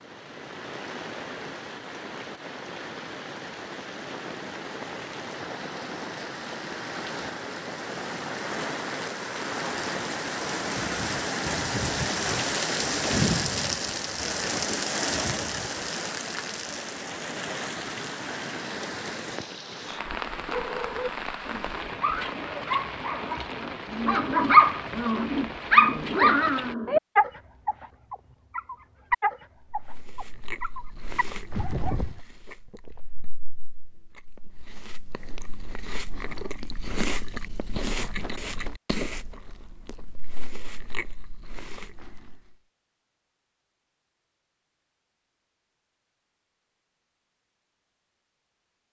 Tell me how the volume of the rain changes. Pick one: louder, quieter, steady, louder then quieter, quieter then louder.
louder then quieter.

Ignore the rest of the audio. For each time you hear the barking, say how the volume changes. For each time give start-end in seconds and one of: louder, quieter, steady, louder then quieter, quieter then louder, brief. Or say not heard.
20.5-32.2 louder then quieter.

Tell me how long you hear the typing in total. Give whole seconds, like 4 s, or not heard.
not heard.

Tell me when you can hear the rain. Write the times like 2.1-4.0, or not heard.
0.0-26.8.